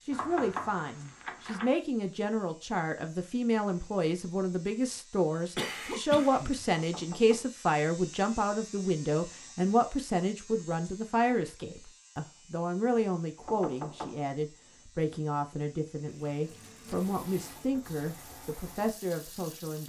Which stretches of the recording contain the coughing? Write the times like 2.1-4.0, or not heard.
5.5-6.7.